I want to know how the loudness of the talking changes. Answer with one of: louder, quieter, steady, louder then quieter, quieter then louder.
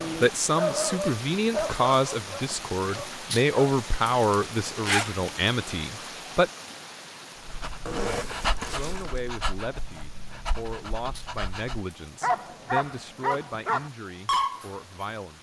quieter.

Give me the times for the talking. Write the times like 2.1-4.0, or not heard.
0.2-6.5, 8.6-15.3.